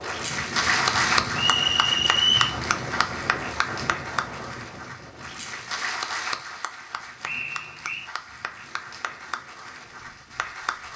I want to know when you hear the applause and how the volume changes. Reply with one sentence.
You can hear the applause from 0.0 to 10.9 s, getting quieter.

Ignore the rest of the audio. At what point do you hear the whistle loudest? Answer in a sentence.
The volume of the whistle peaks at 2 seconds.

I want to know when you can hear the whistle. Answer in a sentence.
The whistle can be heard from 1.4 to 2.5 s and from 7.2 to 8.1 s.